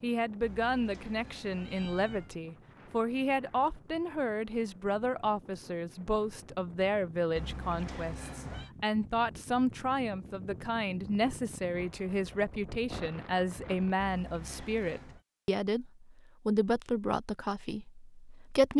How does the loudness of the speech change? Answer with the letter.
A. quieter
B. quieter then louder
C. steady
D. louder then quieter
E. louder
C.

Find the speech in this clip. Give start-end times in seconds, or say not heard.
0.0-18.7.